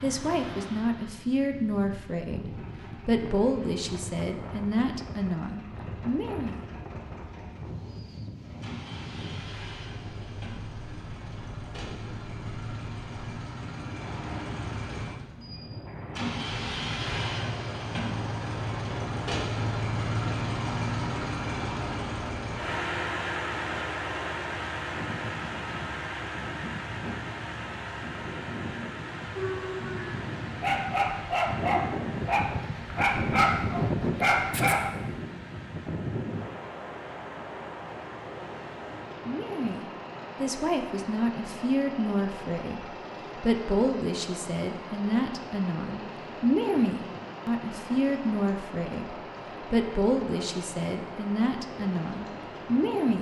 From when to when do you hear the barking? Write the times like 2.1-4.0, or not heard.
29.4-34.9.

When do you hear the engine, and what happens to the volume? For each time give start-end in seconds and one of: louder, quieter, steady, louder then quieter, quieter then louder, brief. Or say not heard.
2.5-53.1 louder then quieter.